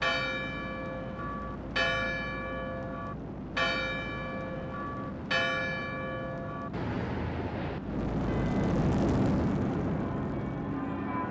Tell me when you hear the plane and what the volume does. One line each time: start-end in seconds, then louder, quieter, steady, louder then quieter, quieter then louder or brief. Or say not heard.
0.0-11.2 louder.